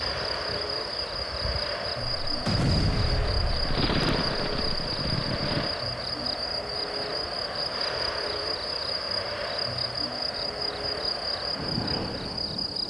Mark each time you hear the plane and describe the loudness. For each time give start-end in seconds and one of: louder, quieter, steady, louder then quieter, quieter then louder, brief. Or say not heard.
0.0-12.8 steady.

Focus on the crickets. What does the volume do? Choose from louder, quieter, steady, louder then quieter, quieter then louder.
steady.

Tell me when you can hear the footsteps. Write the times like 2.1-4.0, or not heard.
not heard.